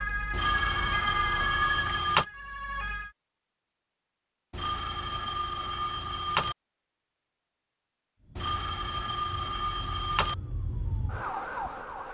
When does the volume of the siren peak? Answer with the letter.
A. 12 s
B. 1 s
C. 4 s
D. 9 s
B.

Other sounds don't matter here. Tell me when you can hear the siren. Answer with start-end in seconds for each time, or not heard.
0.0-3.1, 8.2-12.0.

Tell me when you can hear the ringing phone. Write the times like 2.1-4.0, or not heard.
0.3-2.2, 4.5-6.5, 8.3-10.3.